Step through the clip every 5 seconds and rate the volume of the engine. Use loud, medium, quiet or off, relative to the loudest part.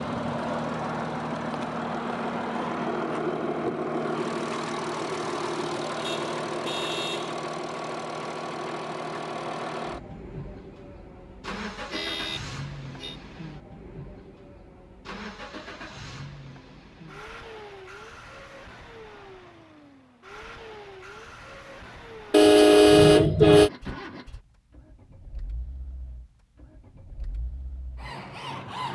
loud, loud, medium, quiet, quiet, quiet.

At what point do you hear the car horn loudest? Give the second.
23 s.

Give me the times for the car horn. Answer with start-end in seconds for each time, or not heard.
6.0-7.3, 11.9-13.2, 22.3-23.7.